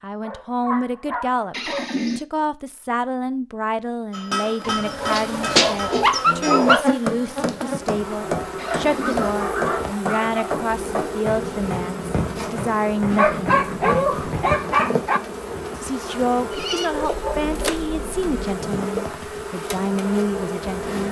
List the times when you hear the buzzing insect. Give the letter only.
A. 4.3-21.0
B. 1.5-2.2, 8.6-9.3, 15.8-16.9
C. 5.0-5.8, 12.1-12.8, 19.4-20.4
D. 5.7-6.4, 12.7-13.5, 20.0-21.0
A.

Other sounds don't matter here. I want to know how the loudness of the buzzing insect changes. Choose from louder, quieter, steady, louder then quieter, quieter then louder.
steady.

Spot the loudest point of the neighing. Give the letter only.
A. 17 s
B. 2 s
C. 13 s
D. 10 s
B.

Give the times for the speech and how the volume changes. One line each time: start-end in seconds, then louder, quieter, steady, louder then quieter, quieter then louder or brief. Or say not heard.
0.0-14.2 steady
15.8-21.0 quieter then louder.